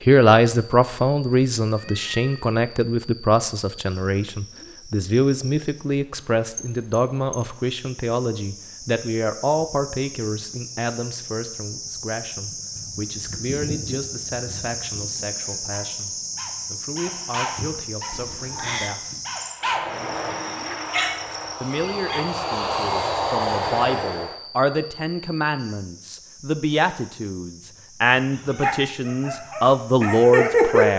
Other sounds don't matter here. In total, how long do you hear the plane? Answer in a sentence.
You can hear the plane for 5 seconds altogether.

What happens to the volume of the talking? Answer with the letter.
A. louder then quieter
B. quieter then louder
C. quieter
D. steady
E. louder
B.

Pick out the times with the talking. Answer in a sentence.
The talking can be heard from 0.0 to 19.1 s and from 21.6 to 30.9 s.